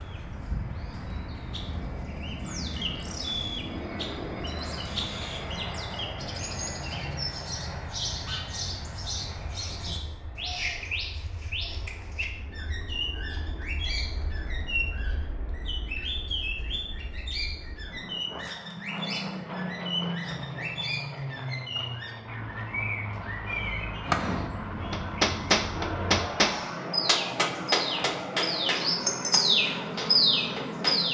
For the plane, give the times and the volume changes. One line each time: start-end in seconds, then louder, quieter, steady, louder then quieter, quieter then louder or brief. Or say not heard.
0.0-31.0 quieter then louder.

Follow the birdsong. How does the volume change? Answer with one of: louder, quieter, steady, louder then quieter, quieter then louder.
louder.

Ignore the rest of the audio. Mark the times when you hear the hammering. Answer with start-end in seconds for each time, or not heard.
24.1-28.9, 29.8-31.0.